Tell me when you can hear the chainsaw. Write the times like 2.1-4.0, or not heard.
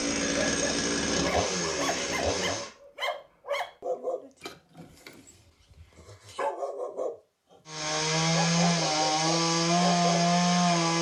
0.0-2.7, 7.7-10.9.